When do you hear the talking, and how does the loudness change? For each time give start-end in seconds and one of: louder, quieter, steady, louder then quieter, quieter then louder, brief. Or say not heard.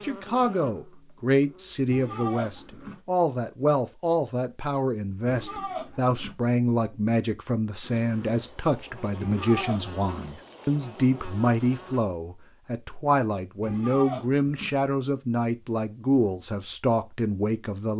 0.0-17.9 steady.